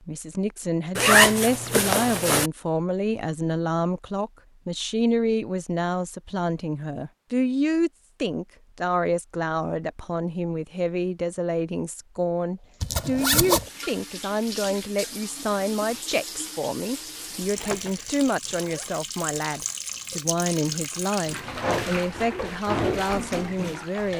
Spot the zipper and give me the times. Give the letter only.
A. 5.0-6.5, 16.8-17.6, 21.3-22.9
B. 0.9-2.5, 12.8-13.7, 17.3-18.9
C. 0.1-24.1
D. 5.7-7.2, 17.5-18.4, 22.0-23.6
B.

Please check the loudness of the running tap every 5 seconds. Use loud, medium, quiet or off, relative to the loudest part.
off, off, medium, medium, loud.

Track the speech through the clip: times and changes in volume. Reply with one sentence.
The speech can be heard from 0.1 to 24.1 s, at a steady volume.